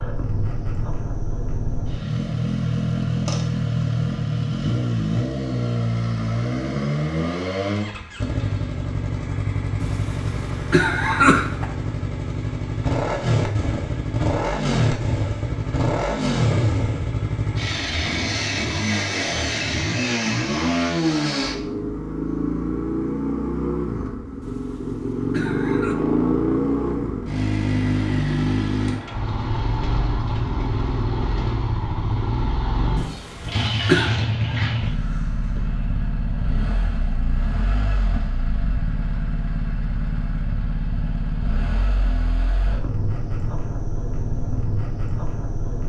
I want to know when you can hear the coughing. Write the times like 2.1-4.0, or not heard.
9.8-11.7, 24.4-26.0, 33.0-34.1.